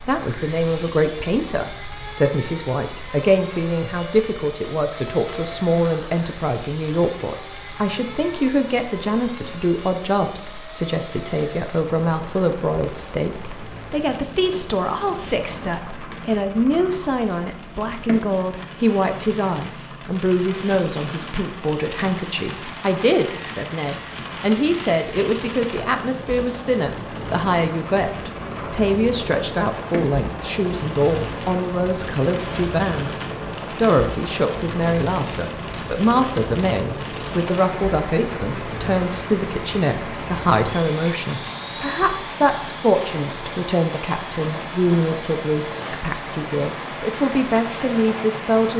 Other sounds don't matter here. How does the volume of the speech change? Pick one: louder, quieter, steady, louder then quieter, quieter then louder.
steady.